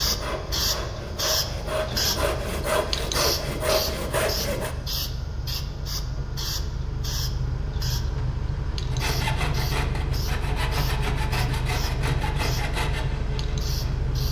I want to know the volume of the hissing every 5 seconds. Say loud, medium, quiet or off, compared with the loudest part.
loud, medium, medium.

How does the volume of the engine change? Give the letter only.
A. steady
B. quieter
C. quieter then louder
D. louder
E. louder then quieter
D.